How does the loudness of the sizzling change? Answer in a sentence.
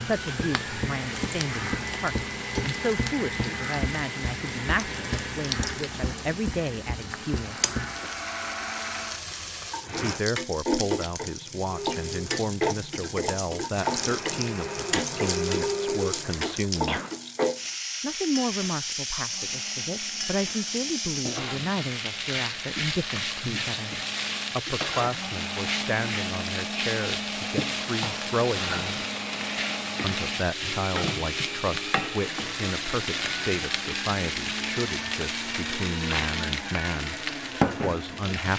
The volume of the sizzling stays about the same.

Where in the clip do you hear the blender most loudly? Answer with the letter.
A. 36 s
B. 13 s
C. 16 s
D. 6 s
C.